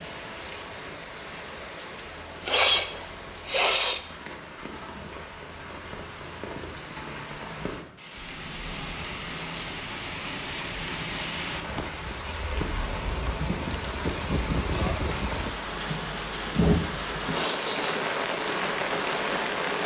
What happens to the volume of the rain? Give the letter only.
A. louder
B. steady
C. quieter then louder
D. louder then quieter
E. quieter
A.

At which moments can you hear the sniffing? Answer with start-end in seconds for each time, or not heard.
2.5-4.0, 17.3-17.9.